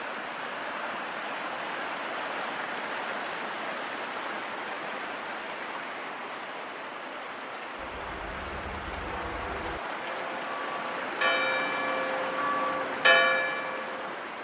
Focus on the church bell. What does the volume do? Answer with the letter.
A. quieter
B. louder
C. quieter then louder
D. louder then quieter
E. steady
B.